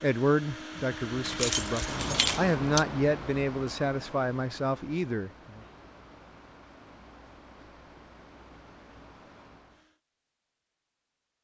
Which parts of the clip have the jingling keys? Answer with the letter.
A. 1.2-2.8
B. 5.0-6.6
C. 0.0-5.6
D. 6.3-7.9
A.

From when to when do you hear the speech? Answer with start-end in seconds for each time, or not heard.
0.0-5.6.